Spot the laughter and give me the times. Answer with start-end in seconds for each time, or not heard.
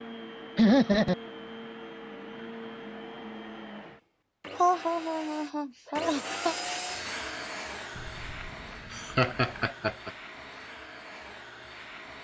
0.6-1.1, 4.5-6.5, 8.9-10.1.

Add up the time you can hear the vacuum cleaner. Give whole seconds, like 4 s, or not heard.
12 s.